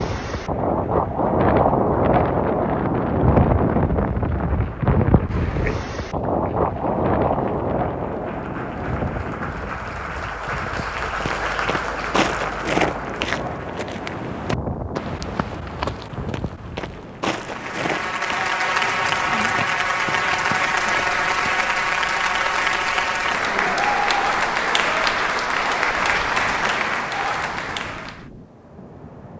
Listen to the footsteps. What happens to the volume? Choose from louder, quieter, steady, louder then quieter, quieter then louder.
quieter.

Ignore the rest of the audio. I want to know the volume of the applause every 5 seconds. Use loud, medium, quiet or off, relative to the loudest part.
quiet, quiet, medium, loud, loud, loud.